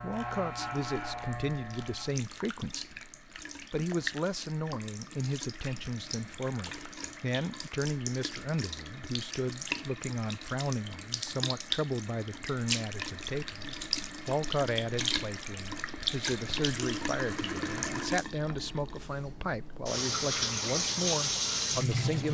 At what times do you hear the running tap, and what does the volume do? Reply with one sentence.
You can hear the running tap from 0.0 to 22.3 s, getting louder.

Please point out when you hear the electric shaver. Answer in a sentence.
You can hear the electric shaver from 0.0 to 2.2 s.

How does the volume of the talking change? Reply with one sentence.
The volume of the talking stays about the same.